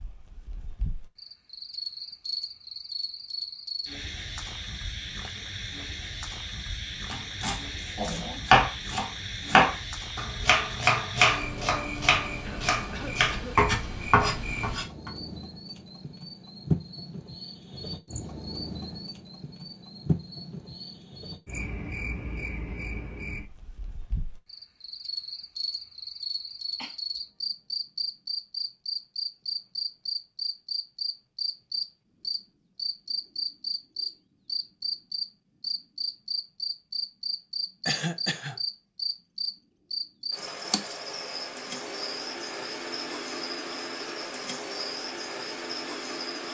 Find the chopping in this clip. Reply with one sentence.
The chopping can be heard from 7.1 to 15.1 s.